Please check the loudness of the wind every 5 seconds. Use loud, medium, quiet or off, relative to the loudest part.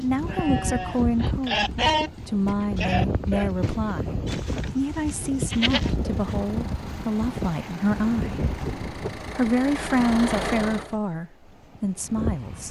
loud, loud, medium.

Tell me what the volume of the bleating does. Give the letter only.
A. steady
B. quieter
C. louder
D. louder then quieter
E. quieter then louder
D.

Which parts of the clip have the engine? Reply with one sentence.
The engine can be heard from 6.0 to 10.9 s.